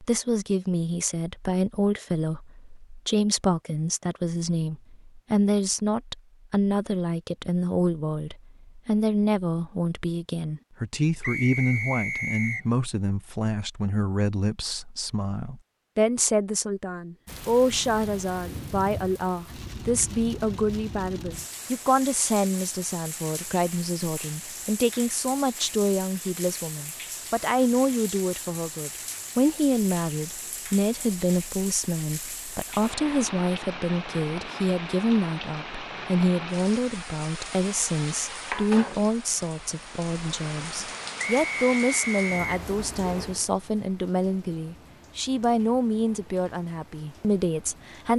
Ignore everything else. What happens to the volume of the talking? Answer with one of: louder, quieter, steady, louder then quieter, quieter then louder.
steady.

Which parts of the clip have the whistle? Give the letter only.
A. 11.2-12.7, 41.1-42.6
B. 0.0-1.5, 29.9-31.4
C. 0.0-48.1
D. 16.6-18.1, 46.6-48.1
A.